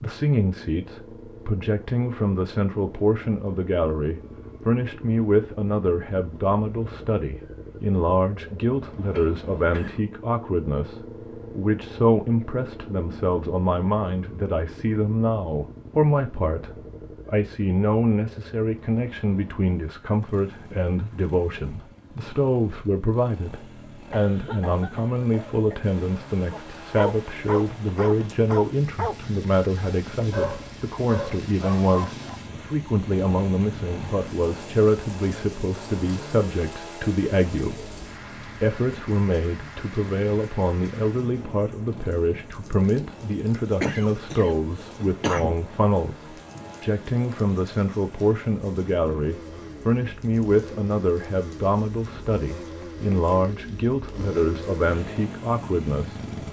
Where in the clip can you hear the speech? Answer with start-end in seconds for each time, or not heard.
0.0-56.2.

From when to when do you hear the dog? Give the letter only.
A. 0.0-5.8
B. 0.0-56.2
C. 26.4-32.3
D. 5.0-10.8
C.